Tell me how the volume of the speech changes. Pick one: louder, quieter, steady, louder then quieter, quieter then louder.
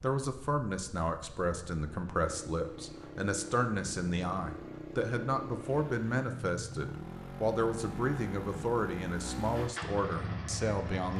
steady.